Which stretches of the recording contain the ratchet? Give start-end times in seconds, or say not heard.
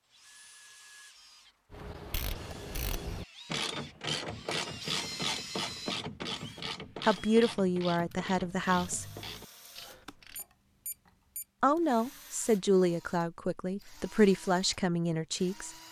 1.7-10.4.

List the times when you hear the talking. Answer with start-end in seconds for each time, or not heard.
7.0-9.1, 11.6-15.7.